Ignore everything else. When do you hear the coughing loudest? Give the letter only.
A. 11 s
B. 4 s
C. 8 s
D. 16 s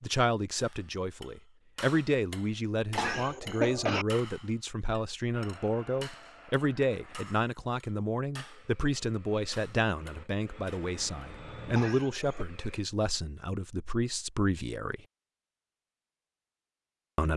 B.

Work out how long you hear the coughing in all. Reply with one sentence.
You can hear the coughing for 2 seconds altogether.